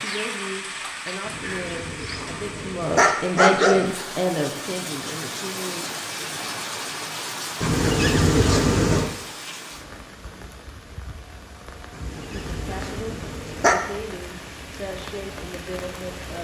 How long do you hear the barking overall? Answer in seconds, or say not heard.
6 s.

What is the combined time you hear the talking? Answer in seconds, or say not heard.
10 s.